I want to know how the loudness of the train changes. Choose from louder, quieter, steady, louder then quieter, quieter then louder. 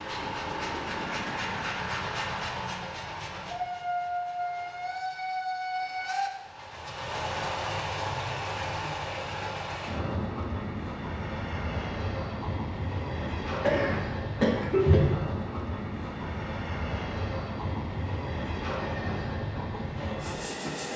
steady.